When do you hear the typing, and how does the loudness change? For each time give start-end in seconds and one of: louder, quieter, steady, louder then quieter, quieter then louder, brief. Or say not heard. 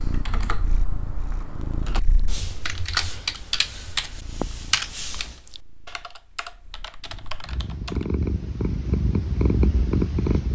0.0-8.1 louder then quieter.